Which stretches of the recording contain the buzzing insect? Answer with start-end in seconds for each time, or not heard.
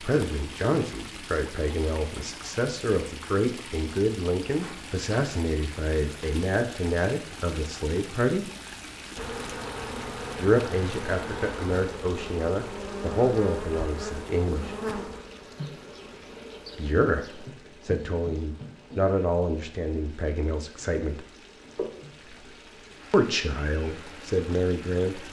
9.2-25.2.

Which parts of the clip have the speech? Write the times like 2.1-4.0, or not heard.
0.0-8.5, 10.3-14.8, 16.8-21.2, 23.1-25.2.